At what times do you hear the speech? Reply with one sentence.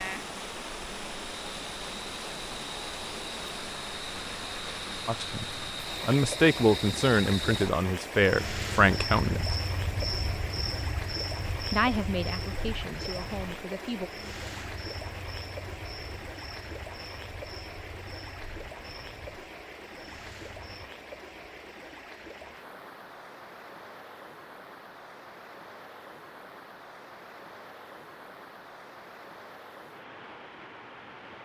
The speech can be heard from 5.0 to 9.5 s and from 11.7 to 14.1 s.